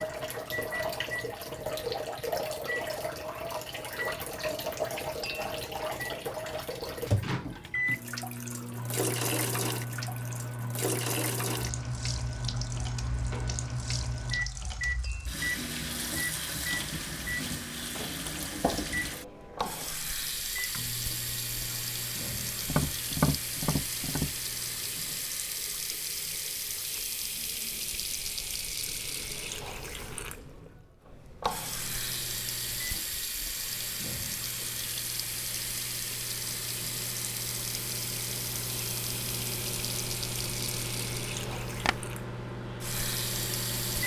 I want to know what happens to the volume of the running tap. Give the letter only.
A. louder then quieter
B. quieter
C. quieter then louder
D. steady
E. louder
D.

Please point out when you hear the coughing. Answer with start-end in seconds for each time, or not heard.
not heard.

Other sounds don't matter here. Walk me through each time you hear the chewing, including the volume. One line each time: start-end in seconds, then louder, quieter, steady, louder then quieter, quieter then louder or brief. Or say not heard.
not heard.